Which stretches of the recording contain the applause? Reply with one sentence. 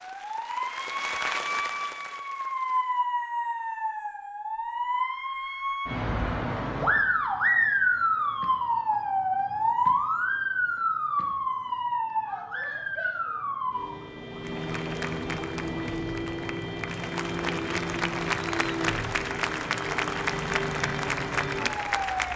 The applause can be heard from 0.0 to 3.0 s and from 14.4 to 22.3 s.